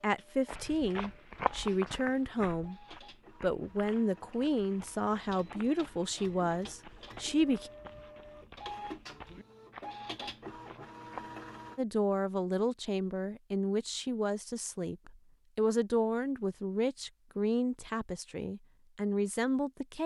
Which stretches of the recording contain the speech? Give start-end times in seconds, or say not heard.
0.0-2.8, 3.4-7.7, 11.8-20.0.